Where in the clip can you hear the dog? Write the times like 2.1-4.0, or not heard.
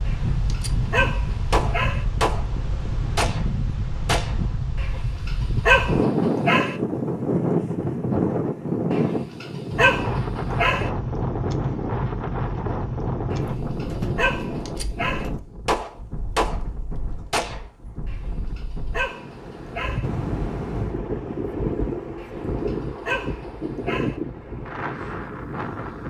0.1-2.0, 4.8-6.8, 8.9-10.9, 13.3-15.3, 18.1-20.1, 22.2-24.1.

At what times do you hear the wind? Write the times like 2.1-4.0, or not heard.
0.0-26.0.